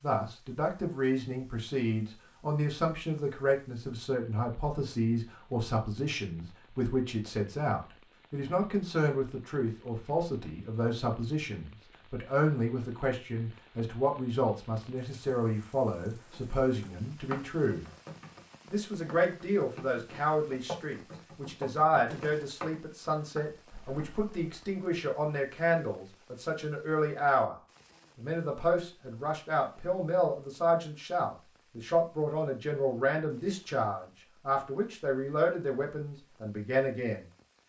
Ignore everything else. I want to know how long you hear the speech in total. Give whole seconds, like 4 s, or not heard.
36 s.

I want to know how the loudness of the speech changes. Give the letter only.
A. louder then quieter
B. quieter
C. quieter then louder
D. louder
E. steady
E.